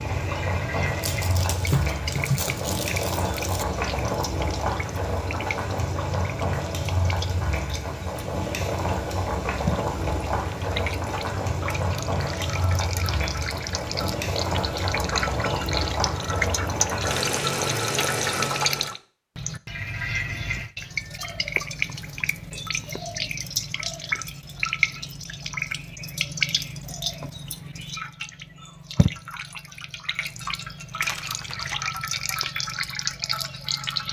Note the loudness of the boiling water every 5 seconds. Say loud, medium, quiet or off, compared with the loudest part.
loud, loud, loud, loud, off, off, off.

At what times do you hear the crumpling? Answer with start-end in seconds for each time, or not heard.
1.0-3.6, 31.0-31.9.